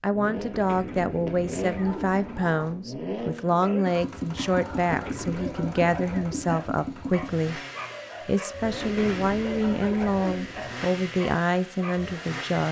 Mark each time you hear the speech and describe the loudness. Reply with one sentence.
The speech can be heard from 0.0 to 7.6 s, at a steady volume; and from 8.2 to 12.6 s, at a steady volume.